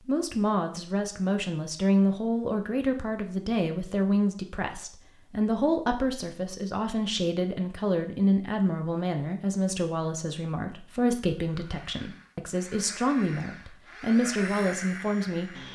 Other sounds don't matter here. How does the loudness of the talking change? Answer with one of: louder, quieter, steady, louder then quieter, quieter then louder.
steady.